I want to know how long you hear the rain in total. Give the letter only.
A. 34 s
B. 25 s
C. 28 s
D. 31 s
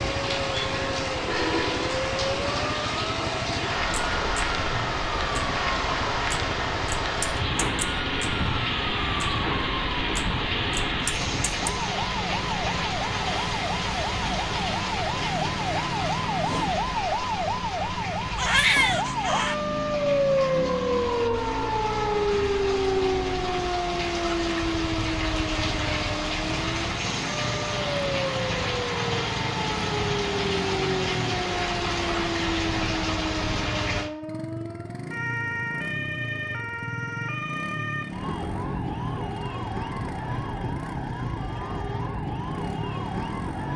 A.